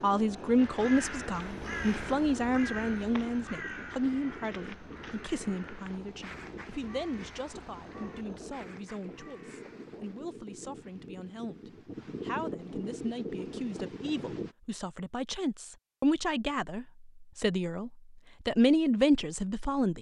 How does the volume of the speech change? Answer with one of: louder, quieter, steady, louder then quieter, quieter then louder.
quieter then louder.